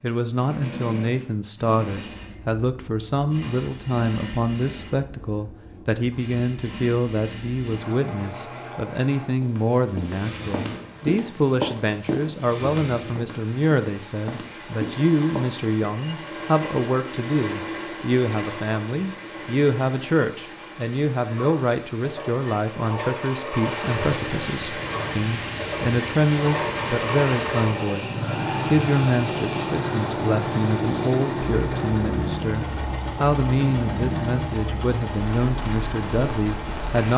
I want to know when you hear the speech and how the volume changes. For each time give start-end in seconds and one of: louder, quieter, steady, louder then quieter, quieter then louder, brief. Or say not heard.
0.0-37.1 steady.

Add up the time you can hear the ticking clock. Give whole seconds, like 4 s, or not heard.
not heard.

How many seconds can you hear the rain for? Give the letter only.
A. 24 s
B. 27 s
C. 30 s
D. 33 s
A.